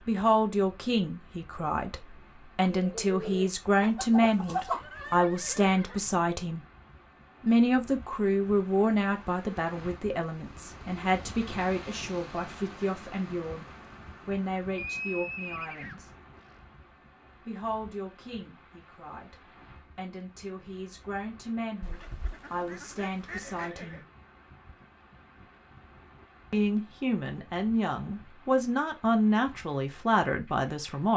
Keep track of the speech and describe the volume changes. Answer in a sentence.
The loudness of the speech goes down, then up.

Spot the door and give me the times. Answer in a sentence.
You can't hear the door here.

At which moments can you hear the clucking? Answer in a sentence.
You can hear the clucking from 2.6 to 5.2 s and from 21.8 to 23.7 s.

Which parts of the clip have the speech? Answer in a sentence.
The speech can be heard from 0.1 to 6.7 s, from 7.4 to 16.1 s, from 17.4 to 24.0 s and from 26.5 to 31.1 s.